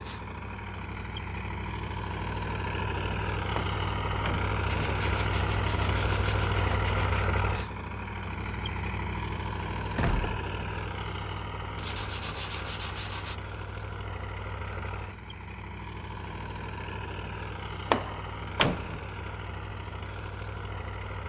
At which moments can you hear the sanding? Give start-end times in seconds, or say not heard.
4.7-7.2, 11.8-13.4.